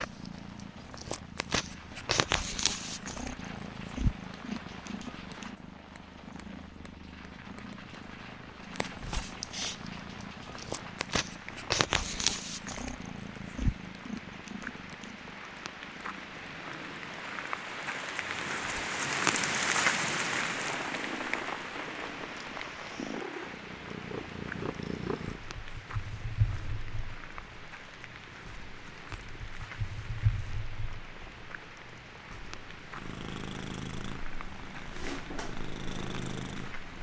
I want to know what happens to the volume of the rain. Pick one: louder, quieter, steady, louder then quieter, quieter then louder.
louder then quieter.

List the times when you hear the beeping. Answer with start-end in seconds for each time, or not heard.
not heard.